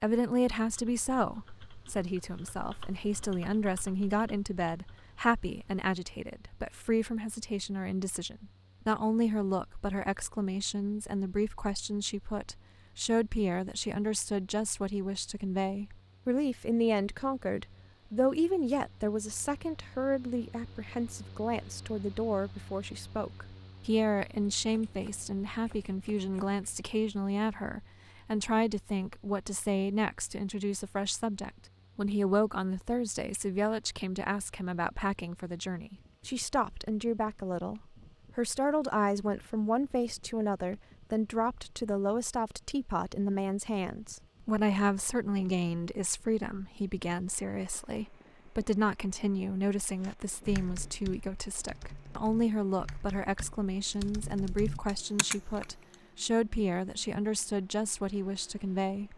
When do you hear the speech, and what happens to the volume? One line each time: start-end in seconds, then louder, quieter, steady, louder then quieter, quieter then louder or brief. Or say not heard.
0.0-59.1 steady.